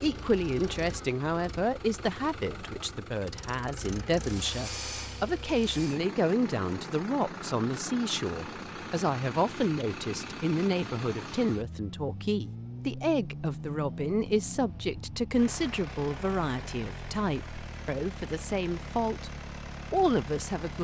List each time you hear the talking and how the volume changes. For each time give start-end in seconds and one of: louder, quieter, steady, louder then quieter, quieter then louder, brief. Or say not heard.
0.0-19.3 steady
19.9-20.7 brief.